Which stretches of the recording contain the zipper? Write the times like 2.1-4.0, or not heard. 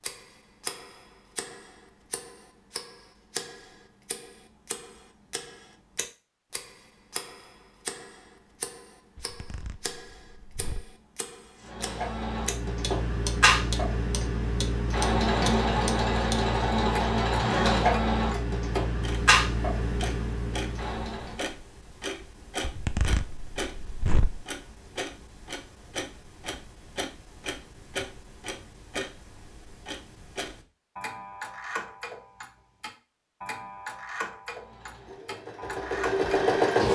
9.2-10.9, 22.6-24.4.